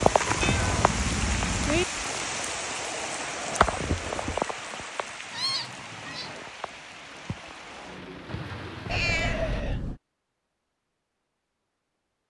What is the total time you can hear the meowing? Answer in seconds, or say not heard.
4 s.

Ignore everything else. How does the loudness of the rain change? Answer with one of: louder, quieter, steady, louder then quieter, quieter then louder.
quieter.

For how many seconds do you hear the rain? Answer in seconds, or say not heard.
10 s.